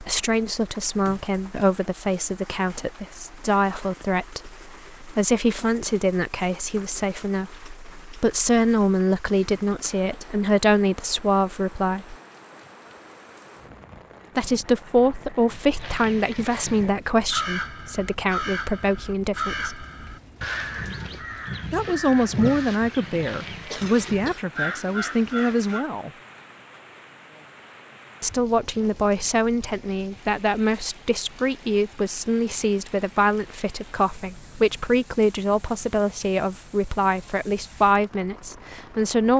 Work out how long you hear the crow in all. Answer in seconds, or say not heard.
10 s.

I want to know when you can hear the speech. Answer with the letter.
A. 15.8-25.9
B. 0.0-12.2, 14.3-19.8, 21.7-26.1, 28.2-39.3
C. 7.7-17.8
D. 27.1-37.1
B.